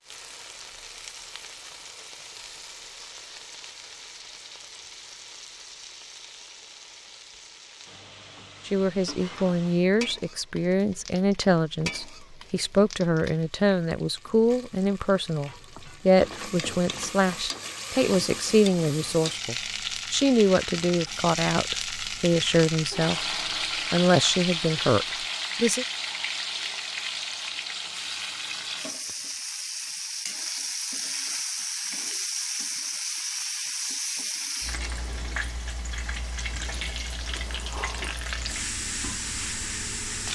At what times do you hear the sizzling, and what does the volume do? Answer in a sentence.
The sizzling can be heard from 0.0 to 40.3 s, getting louder.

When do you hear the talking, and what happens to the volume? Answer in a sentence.
The talking can be heard from 8.7 to 25.9 s, at a steady volume.